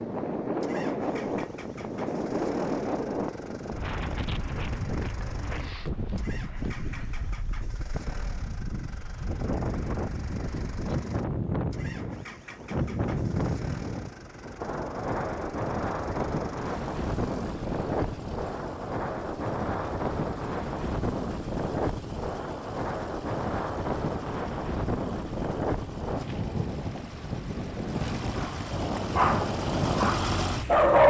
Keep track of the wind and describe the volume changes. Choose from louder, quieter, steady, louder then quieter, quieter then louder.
steady.